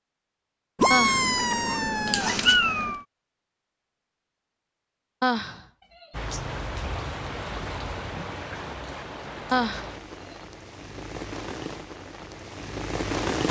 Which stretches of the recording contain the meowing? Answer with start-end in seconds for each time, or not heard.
0.8-3.0.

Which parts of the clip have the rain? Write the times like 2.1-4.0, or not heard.
6.1-13.4.